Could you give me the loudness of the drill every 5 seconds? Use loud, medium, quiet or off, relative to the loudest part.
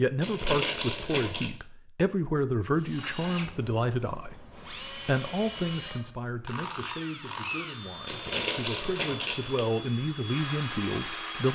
medium, loud, loud.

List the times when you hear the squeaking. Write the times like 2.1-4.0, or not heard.
0.2-1.5, 8.1-9.7.